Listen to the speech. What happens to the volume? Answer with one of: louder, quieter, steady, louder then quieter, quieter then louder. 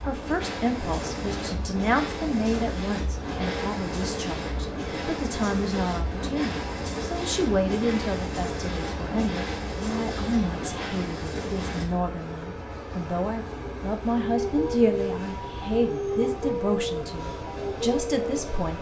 steady.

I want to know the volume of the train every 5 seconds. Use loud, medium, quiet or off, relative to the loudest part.
loud, loud, loud, medium.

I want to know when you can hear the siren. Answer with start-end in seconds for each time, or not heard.
14.1-18.6.